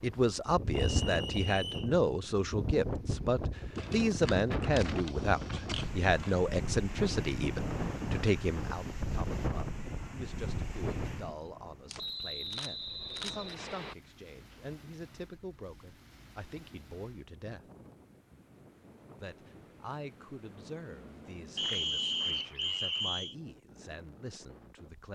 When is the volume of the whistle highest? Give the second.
22 s.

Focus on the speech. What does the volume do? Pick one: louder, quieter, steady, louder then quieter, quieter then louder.
quieter.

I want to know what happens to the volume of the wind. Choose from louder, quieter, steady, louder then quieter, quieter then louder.
quieter.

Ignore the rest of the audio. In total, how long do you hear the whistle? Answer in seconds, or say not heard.
5 s.